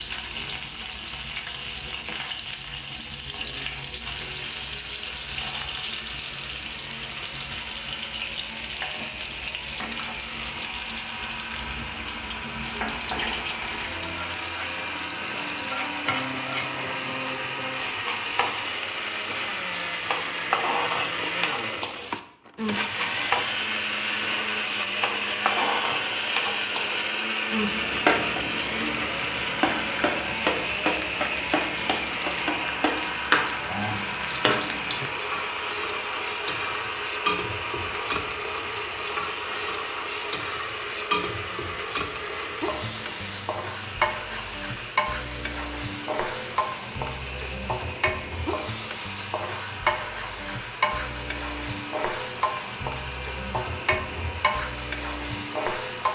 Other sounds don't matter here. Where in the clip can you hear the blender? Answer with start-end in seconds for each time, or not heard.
4.0-56.1.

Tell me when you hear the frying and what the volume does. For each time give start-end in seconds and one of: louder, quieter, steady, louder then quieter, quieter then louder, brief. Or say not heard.
0.0-56.1 steady.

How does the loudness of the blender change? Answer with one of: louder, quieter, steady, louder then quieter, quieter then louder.
louder then quieter.